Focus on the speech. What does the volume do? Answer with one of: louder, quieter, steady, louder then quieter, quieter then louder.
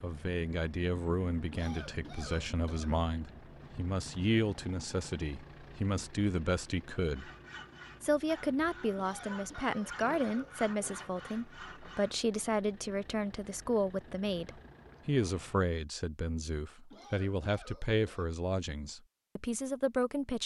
steady.